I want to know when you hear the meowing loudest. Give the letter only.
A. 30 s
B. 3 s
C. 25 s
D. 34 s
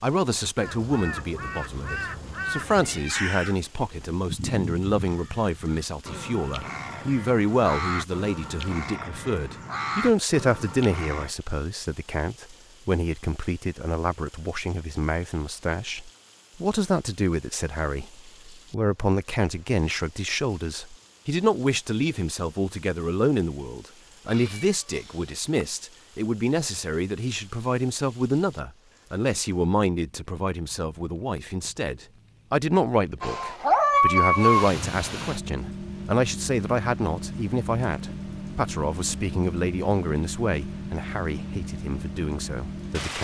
D.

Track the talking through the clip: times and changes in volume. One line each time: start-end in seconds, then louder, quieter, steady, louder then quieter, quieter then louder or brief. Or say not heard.
0.0-43.1 steady.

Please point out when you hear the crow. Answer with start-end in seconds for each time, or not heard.
0.6-11.3.